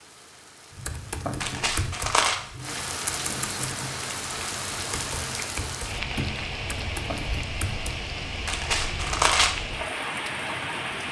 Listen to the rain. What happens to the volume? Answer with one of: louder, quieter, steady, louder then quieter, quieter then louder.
louder.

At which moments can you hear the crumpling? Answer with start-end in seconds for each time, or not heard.
1.4-2.4, 8.4-9.5.